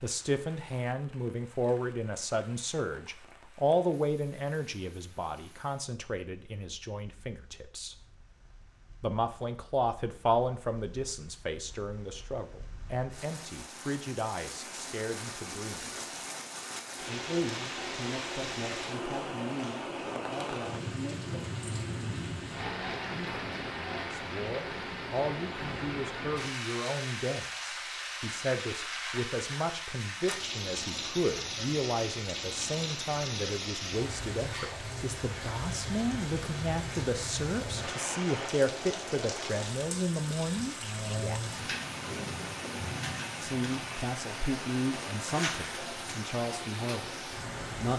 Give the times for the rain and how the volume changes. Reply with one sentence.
The rain can be heard from 0.0 to 47.9 s, getting louder.